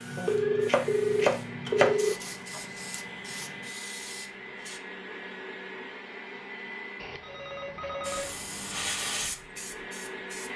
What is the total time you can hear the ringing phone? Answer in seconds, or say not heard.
4 s.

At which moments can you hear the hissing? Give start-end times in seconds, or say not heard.
0.0-4.8, 8.0-10.5.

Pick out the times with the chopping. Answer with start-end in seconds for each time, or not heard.
0.1-1.9.